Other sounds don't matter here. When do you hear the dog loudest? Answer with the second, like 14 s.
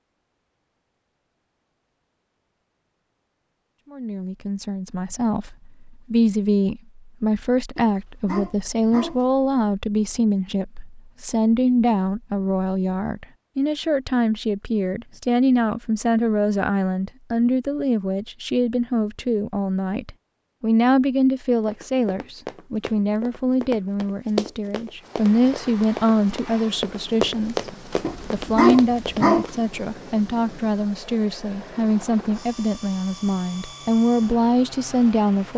29 s.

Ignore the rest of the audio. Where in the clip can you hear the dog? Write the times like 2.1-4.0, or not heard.
7.8-9.2, 28.0-29.5.